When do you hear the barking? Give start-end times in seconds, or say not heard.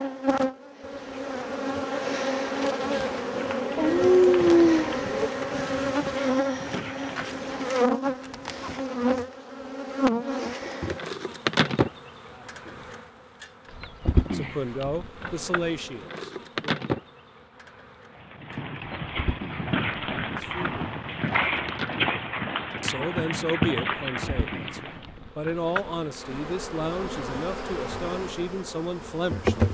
3.8-5.3.